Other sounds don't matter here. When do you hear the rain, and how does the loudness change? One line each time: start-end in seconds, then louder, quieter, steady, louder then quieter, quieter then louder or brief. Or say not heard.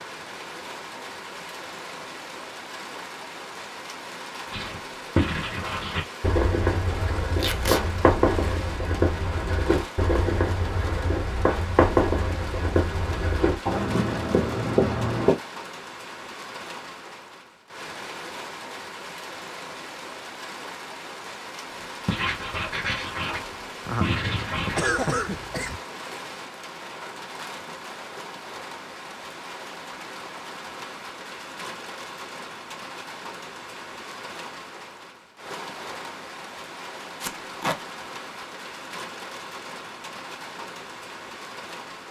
0.0-42.0 steady.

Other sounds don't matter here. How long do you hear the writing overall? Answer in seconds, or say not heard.
13 s.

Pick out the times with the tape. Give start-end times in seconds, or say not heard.
7.3-7.8, 37.2-37.8.